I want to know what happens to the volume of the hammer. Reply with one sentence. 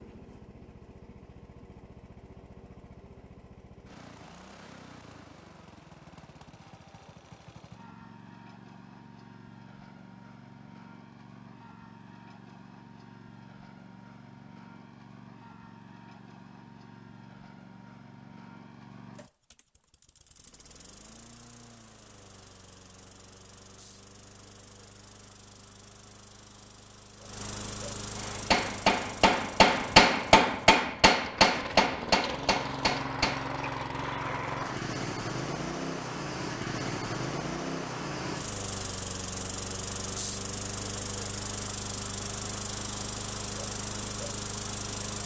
The volume of the hammer goes up, then down.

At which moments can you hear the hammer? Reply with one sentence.
The hammer can be heard from 28.1 to 33.5 s.